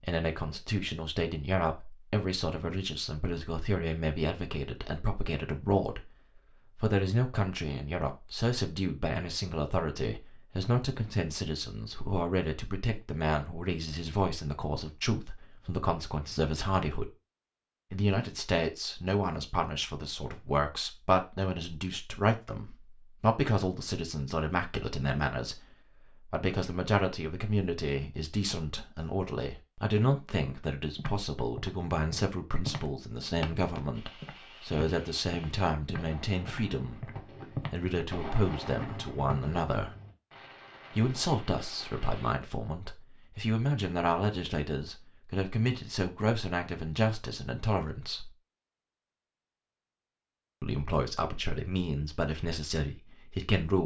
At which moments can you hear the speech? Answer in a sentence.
The speech can be heard from 0.0 to 6.1 s, from 6.8 to 17.1 s, from 17.9 to 39.9 s, from 41.0 to 48.3 s and from 50.6 to 53.8 s.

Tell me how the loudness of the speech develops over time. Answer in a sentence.
The volume of the speech stays about the same.